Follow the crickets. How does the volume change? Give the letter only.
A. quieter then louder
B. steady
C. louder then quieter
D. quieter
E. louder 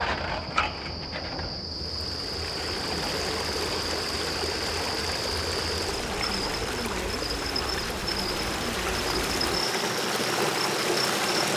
B.